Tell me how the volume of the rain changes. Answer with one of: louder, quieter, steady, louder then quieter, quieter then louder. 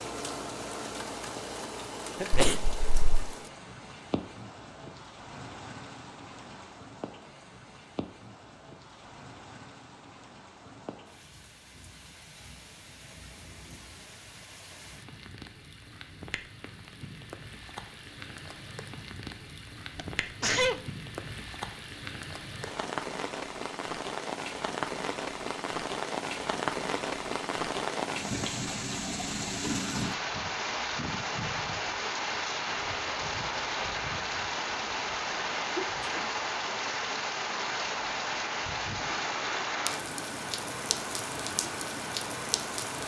quieter then louder.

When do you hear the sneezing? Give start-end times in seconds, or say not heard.
2.2-3.3, 19.9-20.8, 35.8-36.3.